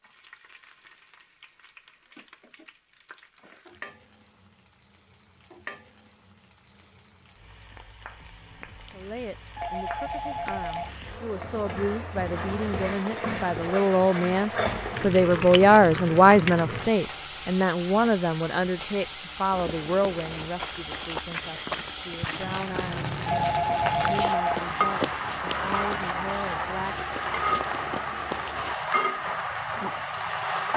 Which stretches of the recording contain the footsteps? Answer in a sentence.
The footsteps can be heard from 19.5 to 29.2 s.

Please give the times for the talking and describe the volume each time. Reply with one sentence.
You can hear the talking from 8.9 to 27.1 s, getting louder then quieter.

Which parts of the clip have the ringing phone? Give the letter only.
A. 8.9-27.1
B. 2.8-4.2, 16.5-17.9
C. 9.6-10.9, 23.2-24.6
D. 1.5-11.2
C.